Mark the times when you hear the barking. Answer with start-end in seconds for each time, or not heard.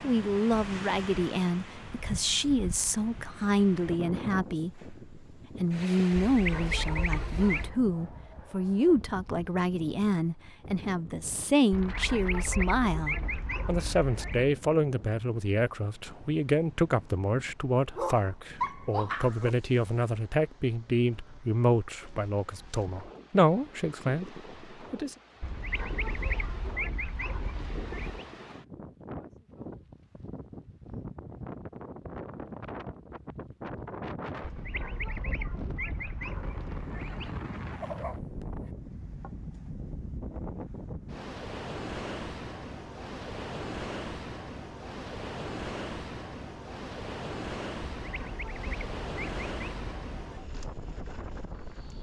6.7-9.0, 17.9-19.5, 37.8-38.7.